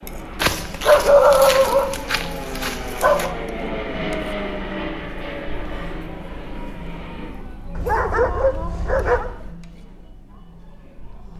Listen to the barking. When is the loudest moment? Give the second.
1 s.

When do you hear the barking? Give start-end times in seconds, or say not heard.
0.4-3.4, 7.8-9.3.